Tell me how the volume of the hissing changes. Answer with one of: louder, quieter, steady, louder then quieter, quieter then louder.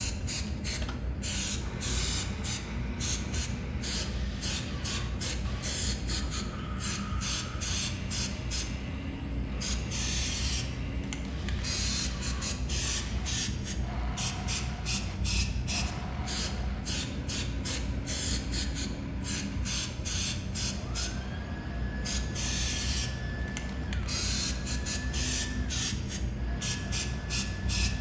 steady.